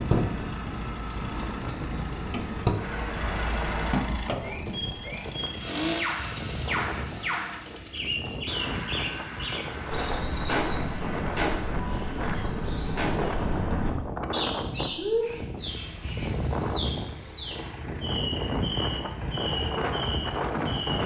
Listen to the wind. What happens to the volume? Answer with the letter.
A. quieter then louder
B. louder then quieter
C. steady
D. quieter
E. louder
E.